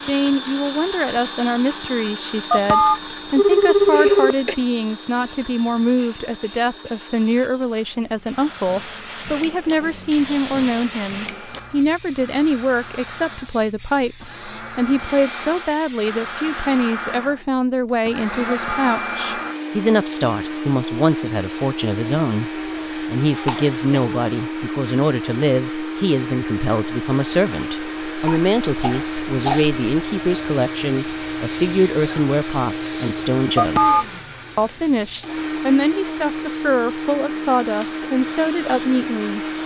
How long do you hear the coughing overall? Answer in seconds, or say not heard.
3 s.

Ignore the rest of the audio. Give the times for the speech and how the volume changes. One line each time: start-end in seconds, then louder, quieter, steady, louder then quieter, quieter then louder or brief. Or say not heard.
0.0-39.4 steady.